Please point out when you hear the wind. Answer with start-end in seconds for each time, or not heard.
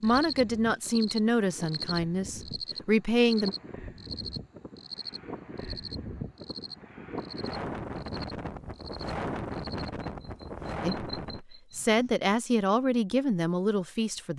0.0-11.4.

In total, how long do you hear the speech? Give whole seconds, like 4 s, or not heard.
7 s.